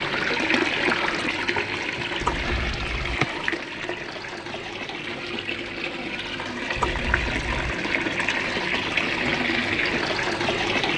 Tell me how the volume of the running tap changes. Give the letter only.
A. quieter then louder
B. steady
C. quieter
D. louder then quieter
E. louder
A.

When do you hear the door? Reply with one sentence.
You can hear the door from 2.2 to 3.6 s and from 6.8 to 7.8 s.